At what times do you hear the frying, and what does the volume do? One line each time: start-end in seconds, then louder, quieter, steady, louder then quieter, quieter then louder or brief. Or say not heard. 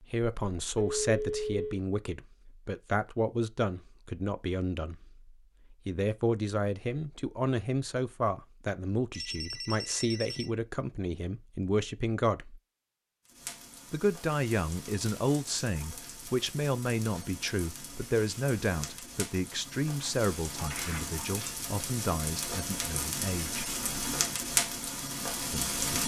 13.2-26.0 louder.